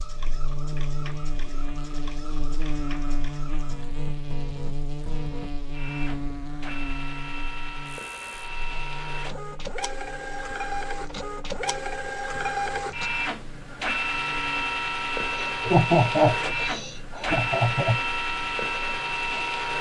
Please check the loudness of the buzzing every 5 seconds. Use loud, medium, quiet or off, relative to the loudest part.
loud, loud, quiet, quiet.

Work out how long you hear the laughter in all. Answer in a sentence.
You can hear the laughter for 3 seconds altogether.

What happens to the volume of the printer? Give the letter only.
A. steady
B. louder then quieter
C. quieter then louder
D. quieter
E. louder
E.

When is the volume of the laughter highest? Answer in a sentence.
The volume of the laughter peaks at 16 seconds.